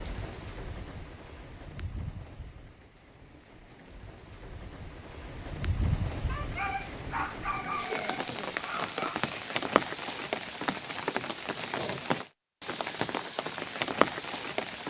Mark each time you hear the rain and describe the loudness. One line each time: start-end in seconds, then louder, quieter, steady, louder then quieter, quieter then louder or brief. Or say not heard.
0.0-14.8 louder.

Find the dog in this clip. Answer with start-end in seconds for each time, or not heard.
6.2-9.2.